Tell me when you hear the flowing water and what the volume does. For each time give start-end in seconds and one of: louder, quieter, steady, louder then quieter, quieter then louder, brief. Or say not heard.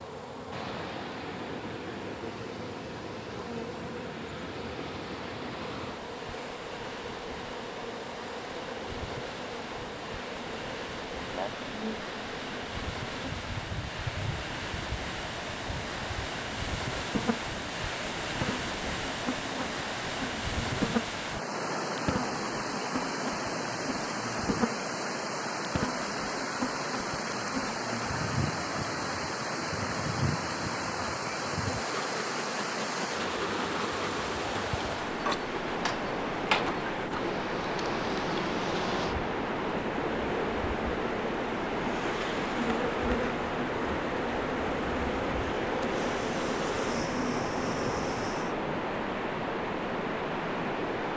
0.0-51.1 louder.